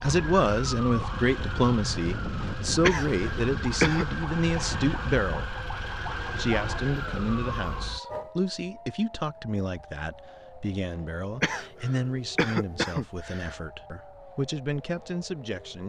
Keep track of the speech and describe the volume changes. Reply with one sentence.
The volume of the speech goes down.